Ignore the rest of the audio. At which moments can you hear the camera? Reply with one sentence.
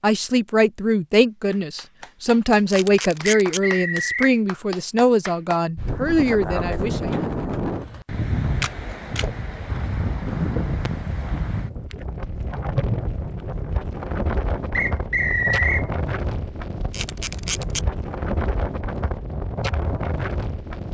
The camera can be heard from 2.7 to 3.6 s, from 8.6 to 9.2 s and from 16.9 to 17.8 s.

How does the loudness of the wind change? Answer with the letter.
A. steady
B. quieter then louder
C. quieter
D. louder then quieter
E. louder
A.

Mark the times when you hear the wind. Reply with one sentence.
The wind can be heard from 5.8 to 20.9 s.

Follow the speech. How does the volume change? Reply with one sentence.
The volume of the speech stays about the same.